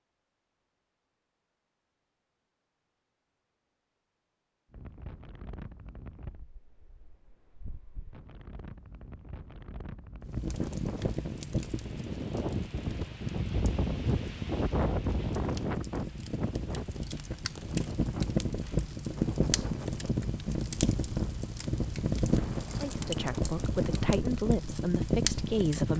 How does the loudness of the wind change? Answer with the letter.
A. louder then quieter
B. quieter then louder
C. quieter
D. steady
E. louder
A.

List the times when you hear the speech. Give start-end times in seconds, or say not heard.
22.8-25.9.